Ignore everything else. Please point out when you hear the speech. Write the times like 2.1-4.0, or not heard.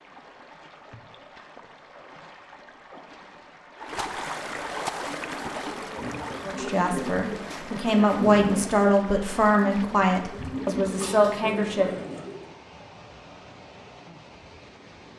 6.5-12.0.